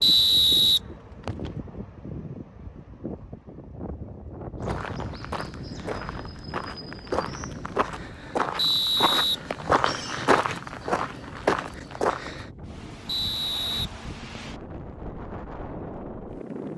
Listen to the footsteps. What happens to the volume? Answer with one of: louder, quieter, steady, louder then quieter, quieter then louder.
louder.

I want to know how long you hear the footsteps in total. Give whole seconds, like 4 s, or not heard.
8 s.